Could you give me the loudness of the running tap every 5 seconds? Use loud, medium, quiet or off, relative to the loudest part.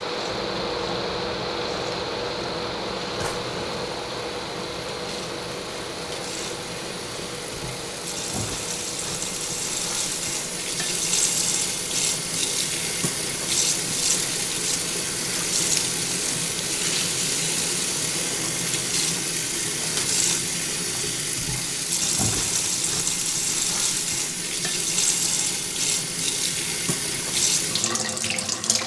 quiet, medium, loud, loud, loud, loud.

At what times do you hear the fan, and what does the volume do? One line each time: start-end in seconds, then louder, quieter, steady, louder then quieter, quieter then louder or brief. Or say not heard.
0.0-18.9 quieter.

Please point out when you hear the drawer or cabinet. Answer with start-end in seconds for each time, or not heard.
3.1-3.9.